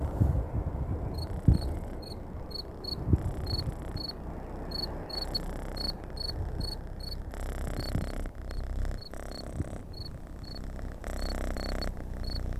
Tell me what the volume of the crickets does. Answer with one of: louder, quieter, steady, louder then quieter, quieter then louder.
quieter.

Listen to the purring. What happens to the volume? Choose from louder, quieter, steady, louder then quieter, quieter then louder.
louder.